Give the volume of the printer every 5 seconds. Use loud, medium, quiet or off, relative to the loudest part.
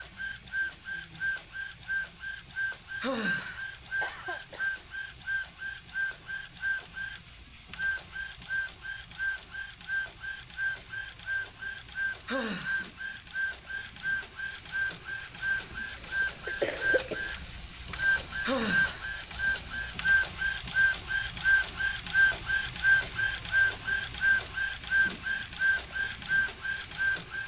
medium, medium, medium, medium, loud, loud.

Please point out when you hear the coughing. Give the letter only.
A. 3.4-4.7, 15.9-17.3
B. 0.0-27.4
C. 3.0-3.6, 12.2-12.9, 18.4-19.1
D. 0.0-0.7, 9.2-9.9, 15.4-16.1
A.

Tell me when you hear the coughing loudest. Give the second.
17 s.